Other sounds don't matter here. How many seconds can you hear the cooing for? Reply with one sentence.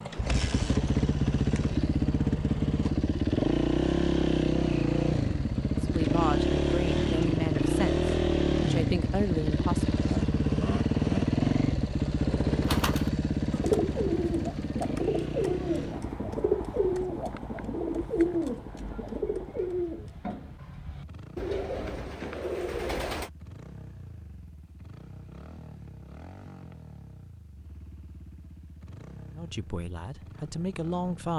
The cooing can be heard for 11 seconds in total.